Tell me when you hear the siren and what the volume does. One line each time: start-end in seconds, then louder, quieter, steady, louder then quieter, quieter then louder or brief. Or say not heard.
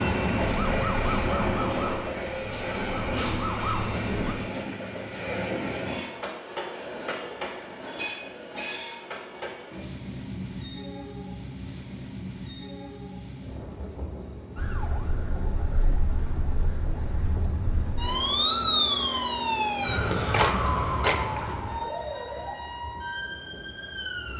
0.0-4.3 quieter then louder
14.6-24.3 louder then quieter.